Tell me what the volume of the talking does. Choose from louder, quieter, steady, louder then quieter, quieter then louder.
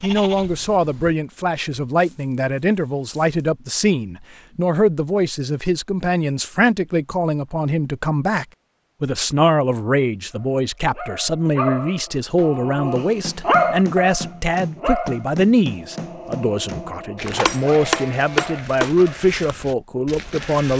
steady.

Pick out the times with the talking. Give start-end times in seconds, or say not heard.
0.0-20.7.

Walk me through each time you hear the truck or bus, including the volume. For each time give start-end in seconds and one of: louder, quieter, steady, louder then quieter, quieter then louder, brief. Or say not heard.
not heard.